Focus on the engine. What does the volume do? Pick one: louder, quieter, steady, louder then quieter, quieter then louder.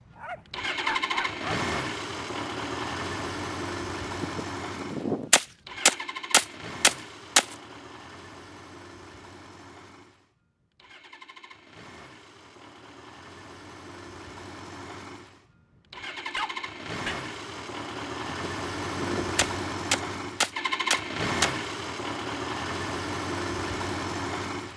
quieter then louder.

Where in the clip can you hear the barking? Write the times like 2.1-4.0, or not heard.
0.1-1.6, 16.3-17.2.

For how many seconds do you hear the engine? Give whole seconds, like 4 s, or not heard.
25 s.